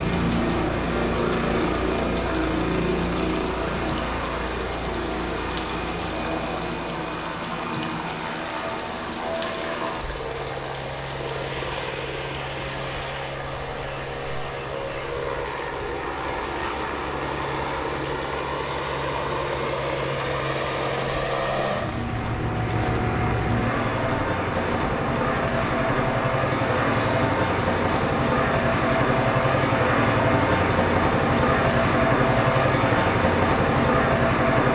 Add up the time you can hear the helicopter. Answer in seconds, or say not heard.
35 s.